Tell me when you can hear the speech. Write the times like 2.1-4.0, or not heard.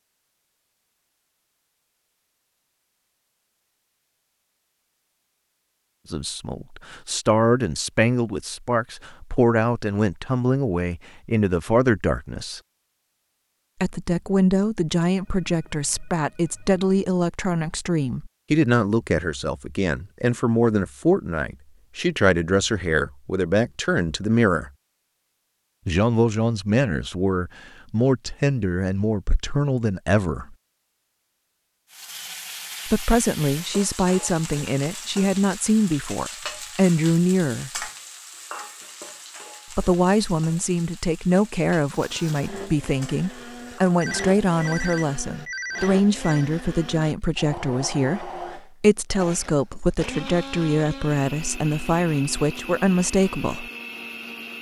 6.1-12.6, 13.8-24.7, 25.9-30.6, 32.9-37.9, 39.7-53.7.